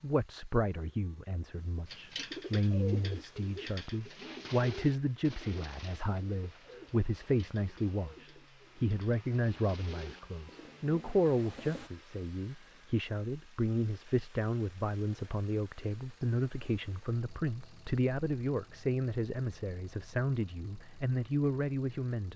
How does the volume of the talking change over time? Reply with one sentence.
The loudness of the talking stays about the same.